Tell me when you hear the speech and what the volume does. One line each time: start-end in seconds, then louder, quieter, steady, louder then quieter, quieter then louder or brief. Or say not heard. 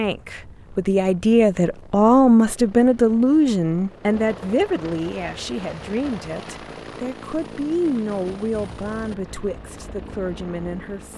0.0-11.1 quieter.